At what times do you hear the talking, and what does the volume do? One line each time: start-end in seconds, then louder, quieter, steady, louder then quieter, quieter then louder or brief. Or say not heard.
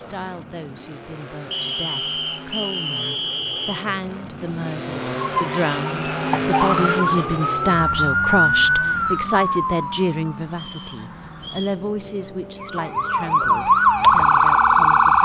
0.0-15.2 louder then quieter.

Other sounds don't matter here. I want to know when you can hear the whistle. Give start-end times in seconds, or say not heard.
1.5-3.9, 10.6-11.8.